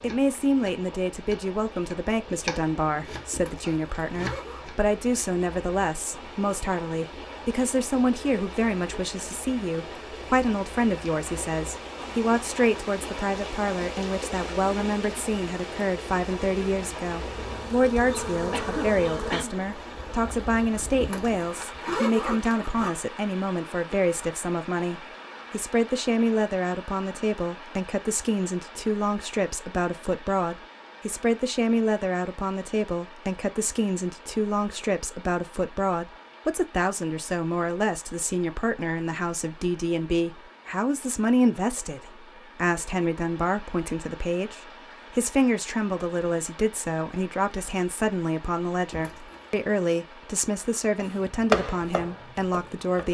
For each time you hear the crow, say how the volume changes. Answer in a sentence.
The crow can't be heard in this clip.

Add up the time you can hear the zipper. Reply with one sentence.
The zipper can be heard for 4 seconds in total.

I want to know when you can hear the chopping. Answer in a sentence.
You can hear the chopping from 0.0 to 4.8 s and from 51.0 to 53.1 s.